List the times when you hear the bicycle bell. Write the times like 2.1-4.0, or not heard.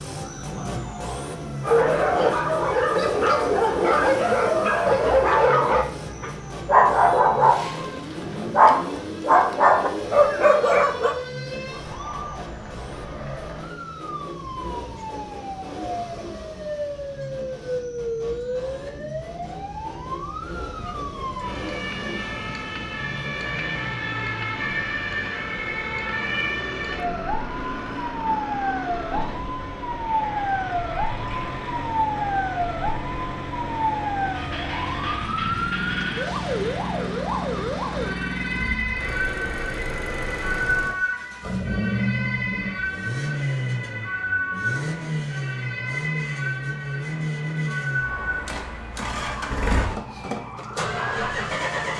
not heard.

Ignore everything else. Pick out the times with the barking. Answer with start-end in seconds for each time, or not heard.
1.6-11.2.